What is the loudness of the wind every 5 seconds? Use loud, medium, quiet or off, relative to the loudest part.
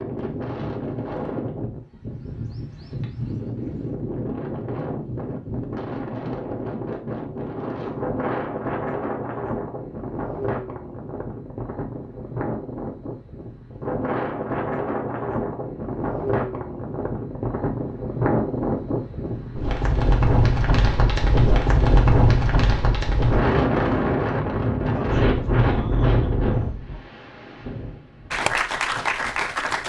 medium, medium, medium, medium, loud, medium.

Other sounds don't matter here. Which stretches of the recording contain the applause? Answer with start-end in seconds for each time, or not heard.
28.3-29.8.